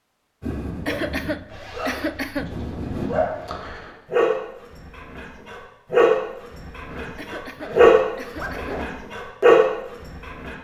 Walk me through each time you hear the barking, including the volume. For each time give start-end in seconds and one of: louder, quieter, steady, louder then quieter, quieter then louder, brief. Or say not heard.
0.4-10.5 louder.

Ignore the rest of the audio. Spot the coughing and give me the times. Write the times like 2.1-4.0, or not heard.
0.8-2.5, 7.2-8.8.